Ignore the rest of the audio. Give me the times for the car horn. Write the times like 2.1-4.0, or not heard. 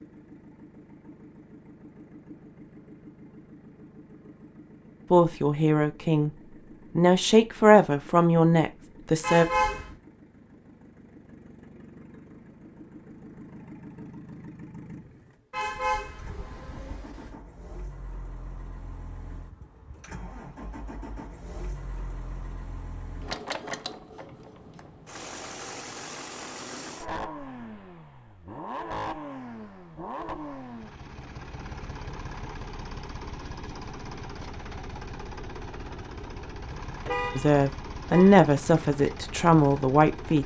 9.2-9.9, 15.5-17.4, 37.0-38.5.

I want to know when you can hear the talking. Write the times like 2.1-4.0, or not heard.
5.1-6.3, 7.0-9.4, 37.4-40.4.